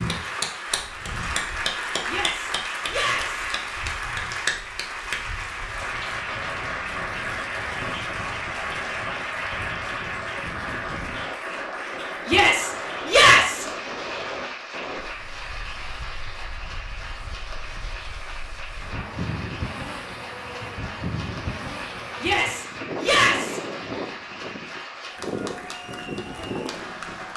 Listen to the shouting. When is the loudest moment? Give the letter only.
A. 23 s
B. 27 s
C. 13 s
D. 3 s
C.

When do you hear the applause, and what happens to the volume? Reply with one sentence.
The applause can be heard from 0.0 to 27.3 s, getting quieter.